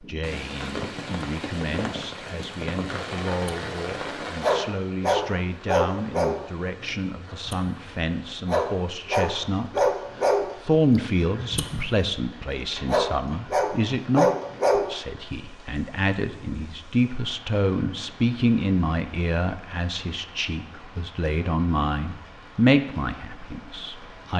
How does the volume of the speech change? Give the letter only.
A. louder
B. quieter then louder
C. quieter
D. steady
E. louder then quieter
A.